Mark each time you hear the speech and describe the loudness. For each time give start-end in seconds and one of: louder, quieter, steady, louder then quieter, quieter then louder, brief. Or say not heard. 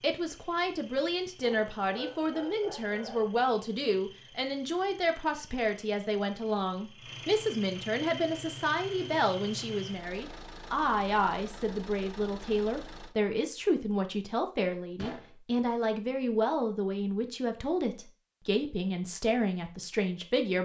0.0-20.6 steady.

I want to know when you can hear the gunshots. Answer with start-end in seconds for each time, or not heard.
14.9-15.3.